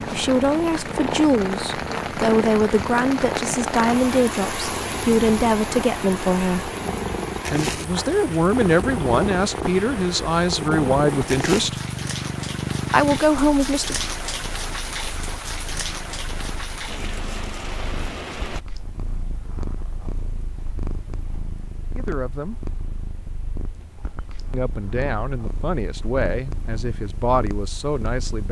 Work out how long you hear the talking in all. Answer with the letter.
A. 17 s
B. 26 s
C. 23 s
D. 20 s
A.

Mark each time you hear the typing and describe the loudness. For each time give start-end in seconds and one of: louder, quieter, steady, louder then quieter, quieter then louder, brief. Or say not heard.
not heard.